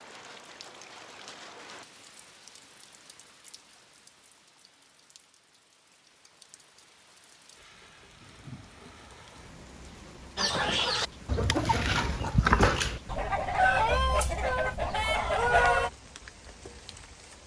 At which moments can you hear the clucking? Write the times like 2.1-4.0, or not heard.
10.3-15.9.